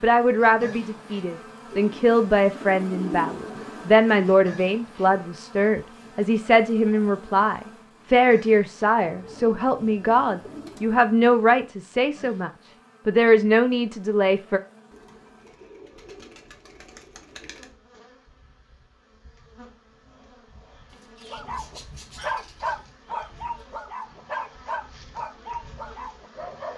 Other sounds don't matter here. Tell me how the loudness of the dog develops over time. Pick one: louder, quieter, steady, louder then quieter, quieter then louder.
quieter.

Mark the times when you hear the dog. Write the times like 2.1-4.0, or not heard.
21.3-26.7.